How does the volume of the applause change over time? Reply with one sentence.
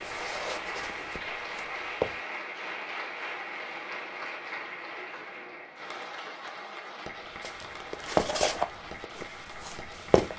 The volume of the applause goes down.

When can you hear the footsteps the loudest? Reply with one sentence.
The volume of the footsteps peaks at 8 seconds.